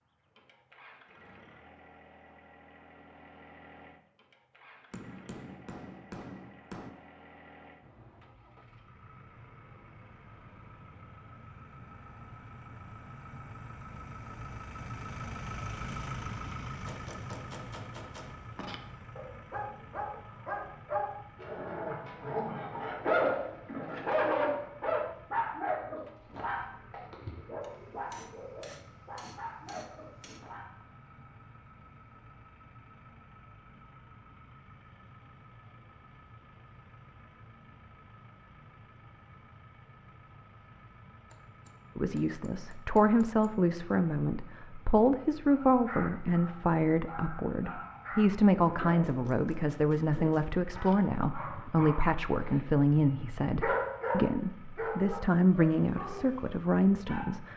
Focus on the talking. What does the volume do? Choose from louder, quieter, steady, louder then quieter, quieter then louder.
steady.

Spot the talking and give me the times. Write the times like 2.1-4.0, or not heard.
42.0-57.5.